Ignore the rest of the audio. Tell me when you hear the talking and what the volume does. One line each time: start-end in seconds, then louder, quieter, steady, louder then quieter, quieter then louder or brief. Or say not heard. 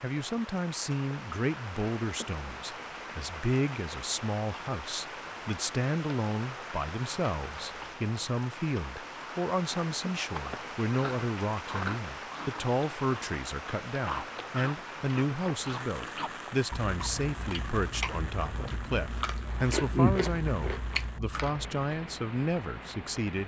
0.0-23.4 steady.